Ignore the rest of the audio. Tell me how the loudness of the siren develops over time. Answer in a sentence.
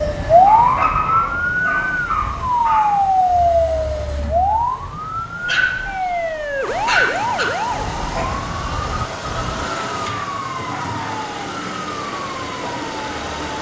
The loudness of the siren goes down.